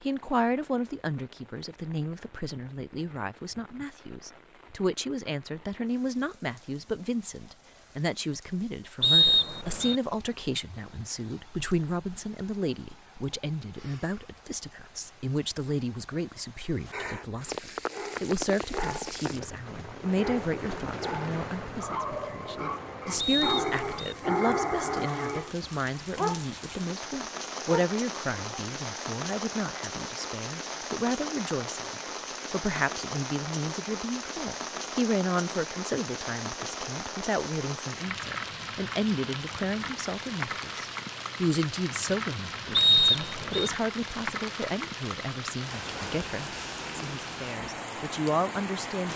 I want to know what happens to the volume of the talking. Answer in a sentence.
The volume of the talking stays about the same.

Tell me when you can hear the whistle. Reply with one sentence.
You can hear the whistle from 9.0 to 9.9 s, from 23.1 to 24.1 s and from 42.8 to 43.7 s.